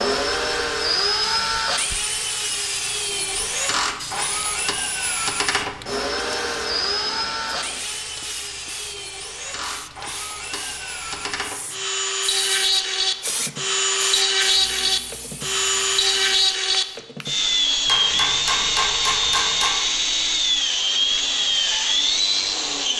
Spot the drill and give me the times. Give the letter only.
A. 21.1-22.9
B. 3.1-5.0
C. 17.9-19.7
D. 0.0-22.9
D.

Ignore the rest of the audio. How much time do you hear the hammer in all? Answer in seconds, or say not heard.
2 s.